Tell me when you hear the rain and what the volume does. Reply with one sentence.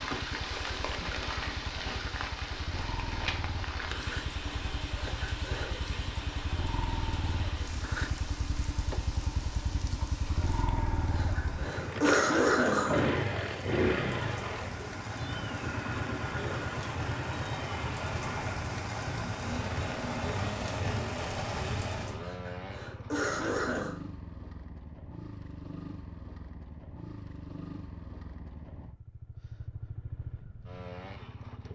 You can hear the rain from 0.0 to 22.3 s, getting quieter then louder.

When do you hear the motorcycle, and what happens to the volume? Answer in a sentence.
You can hear the motorcycle from 0.0 to 31.6 s, getting louder then quieter.